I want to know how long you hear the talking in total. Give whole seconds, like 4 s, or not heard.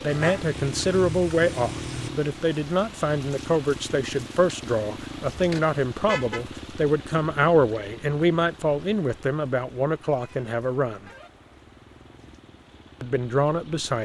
12 s.